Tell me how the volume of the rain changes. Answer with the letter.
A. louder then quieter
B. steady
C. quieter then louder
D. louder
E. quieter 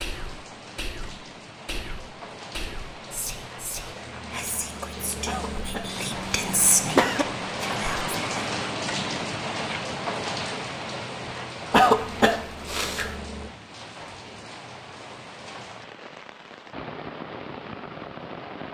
A.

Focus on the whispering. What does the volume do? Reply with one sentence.
The volume of the whispering goes up.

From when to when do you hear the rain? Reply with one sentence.
You can hear the rain from 0.0 to 18.7 s.